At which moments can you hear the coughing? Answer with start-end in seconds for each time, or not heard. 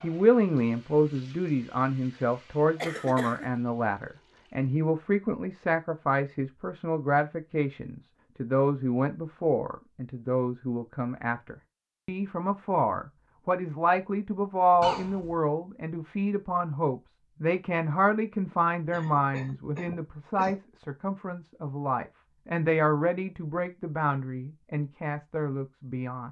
2.8-3.5, 14.8-15.3, 18.9-20.6.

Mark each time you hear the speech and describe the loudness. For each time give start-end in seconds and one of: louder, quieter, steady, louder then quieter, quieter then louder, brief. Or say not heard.
0.0-26.2 steady.